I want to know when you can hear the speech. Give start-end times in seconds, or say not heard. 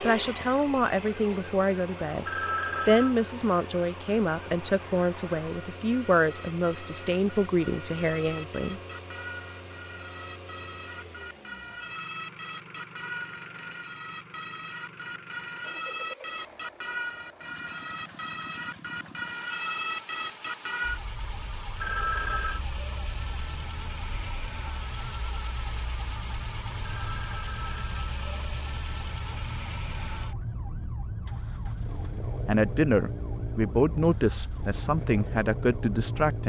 0.0-2.2, 2.9-8.8, 32.5-36.4.